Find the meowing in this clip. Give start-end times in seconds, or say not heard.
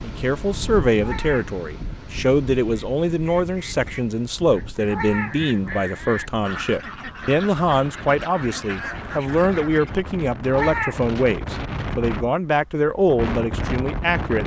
1.0-1.6, 4.8-5.8, 10.5-11.1.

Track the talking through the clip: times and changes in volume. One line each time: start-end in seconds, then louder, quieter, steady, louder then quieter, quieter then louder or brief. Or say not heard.
0.0-14.4 steady.